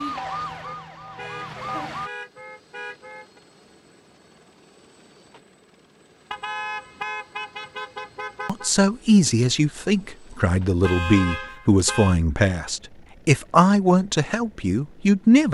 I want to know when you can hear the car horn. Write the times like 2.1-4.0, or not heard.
0.7-3.4, 6.3-8.7, 10.8-12.2.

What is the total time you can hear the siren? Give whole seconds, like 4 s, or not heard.
2 s.